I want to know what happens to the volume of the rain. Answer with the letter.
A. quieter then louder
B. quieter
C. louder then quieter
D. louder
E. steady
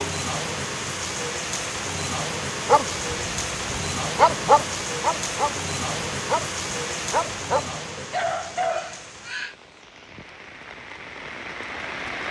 B.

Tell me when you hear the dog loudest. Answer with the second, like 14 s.
4 s.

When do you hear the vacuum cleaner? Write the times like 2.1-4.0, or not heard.
not heard.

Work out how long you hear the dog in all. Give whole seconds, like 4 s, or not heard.
7 s.